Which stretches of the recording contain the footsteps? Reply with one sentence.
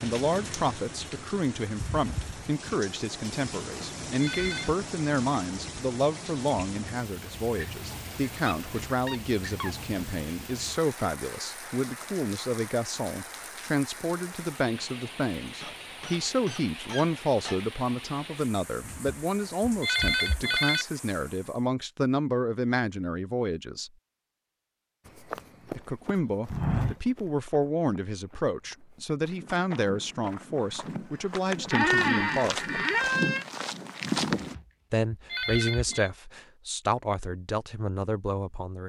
You can hear the footsteps from 25.1 to 34.5 s.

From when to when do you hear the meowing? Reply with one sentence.
You can't hear the meowing here.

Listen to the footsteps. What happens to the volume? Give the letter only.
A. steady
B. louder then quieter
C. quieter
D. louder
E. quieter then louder
E.